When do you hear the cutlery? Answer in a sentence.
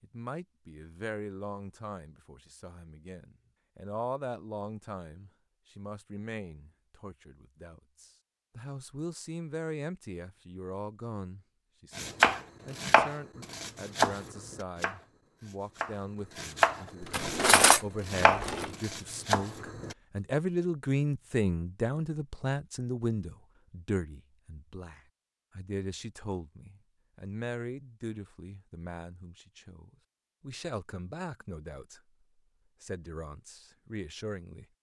You can hear the cutlery from 17.0 to 18.7 s.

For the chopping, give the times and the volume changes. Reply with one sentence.
You can hear the chopping from 11.9 to 19.9 s, at a steady volume.